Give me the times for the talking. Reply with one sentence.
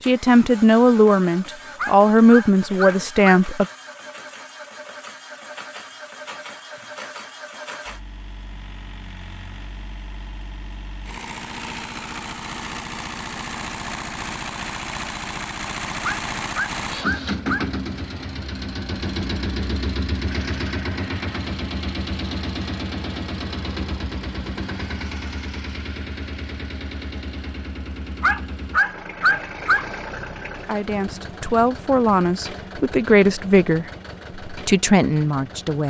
You can hear the talking from 0.1 to 3.6 s and from 30.6 to 35.8 s.